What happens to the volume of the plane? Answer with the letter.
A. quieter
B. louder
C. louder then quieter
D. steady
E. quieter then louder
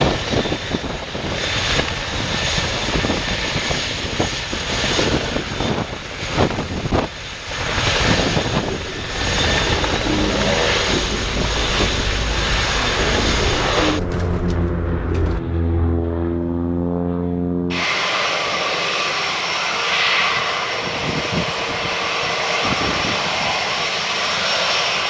D.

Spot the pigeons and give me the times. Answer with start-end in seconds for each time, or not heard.
8.6-15.4.